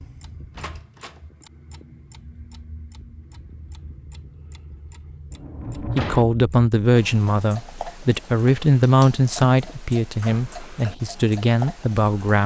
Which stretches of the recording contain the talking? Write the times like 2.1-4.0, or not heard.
5.8-12.4.